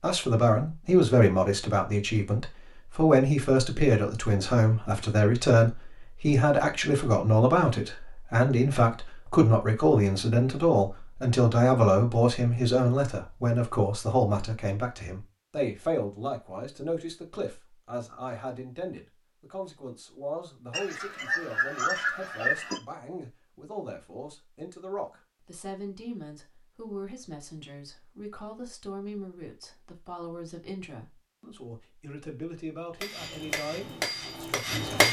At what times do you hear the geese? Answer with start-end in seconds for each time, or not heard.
20.7-22.8.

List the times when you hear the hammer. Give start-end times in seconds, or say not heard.
33.0-35.0.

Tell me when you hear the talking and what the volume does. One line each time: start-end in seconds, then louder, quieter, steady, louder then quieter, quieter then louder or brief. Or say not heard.
0.0-35.0 quieter.